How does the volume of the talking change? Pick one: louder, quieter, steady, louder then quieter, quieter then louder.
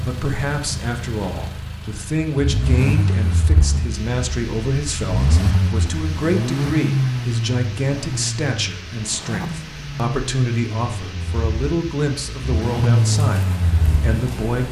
steady.